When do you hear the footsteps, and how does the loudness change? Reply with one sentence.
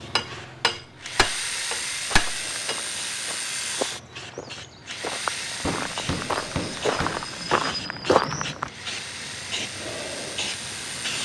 You can hear the footsteps from 2.1 to 8.7 s, getting louder.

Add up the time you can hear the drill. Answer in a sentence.
The drill can be heard for 11 seconds in total.